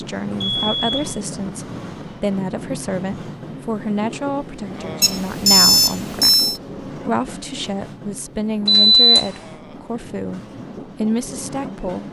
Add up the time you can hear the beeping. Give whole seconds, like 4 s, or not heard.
3 s.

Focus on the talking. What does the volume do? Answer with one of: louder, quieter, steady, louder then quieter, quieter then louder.
steady.